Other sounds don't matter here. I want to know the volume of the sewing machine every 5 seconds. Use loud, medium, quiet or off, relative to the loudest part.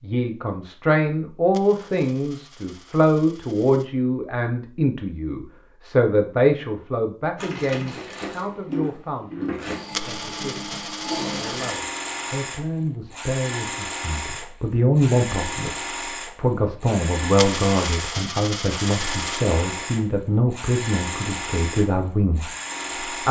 off, loud, loud, loud, loud.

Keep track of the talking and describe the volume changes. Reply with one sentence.
The volume of the talking goes down, then up.